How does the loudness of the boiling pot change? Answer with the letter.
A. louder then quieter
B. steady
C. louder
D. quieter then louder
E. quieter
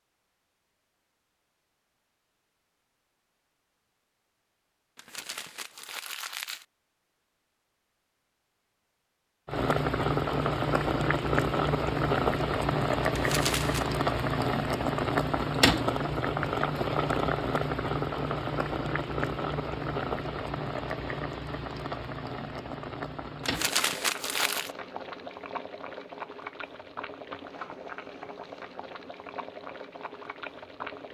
E.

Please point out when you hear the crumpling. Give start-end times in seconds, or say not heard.
5.0-6.7, 13.1-13.8, 23.4-24.8.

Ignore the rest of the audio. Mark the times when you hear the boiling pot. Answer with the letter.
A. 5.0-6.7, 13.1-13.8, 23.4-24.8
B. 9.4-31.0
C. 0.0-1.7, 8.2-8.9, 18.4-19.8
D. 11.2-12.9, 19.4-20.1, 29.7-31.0
B.